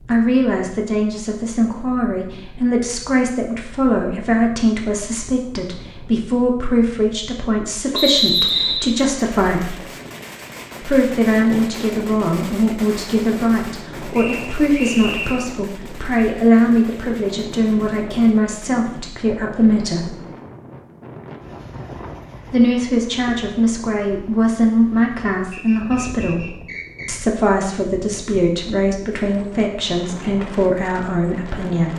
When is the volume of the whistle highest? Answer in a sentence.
The loudest moment of the whistle is at 8 seconds.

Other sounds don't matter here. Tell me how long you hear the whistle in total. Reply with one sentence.
The whistle can be heard for 4 seconds in total.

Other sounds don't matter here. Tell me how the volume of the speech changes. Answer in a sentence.
The loudness of the speech stays about the same.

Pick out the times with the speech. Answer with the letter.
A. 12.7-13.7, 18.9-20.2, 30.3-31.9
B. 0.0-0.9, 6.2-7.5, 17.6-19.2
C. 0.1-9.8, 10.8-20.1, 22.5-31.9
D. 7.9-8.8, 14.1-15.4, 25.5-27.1
C.